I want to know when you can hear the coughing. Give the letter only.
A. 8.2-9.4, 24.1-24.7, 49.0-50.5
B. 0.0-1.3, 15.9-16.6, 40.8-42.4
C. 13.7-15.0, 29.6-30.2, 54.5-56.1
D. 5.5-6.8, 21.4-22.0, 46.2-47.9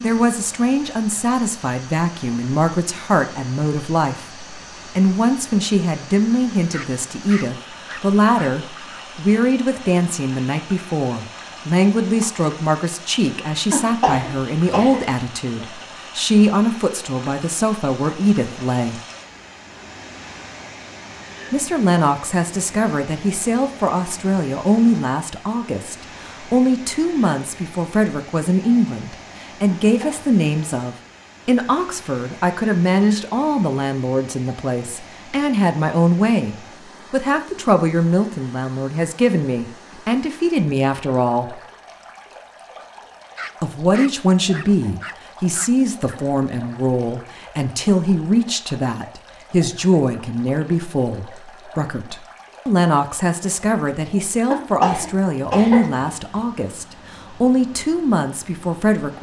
C.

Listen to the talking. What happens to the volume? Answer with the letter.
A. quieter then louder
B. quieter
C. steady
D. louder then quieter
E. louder
C.